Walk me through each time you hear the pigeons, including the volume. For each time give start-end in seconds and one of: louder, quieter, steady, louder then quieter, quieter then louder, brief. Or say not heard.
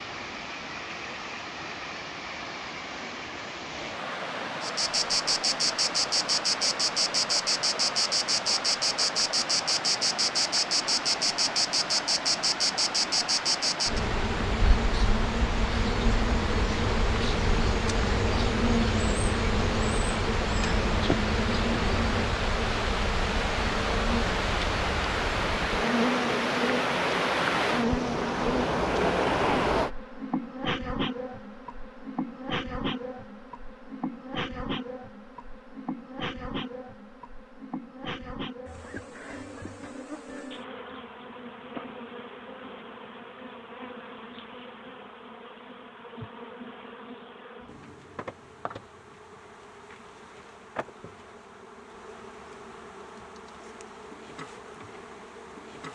not heard.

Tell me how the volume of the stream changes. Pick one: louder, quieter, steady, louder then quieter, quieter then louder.
louder.